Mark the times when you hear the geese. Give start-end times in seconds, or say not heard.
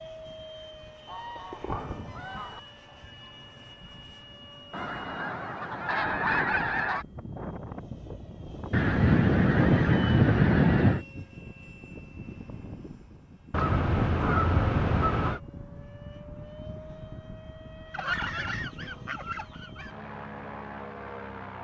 1.1-2.6, 4.7-7.0, 8.7-11.0, 13.5-15.4, 17.9-19.9.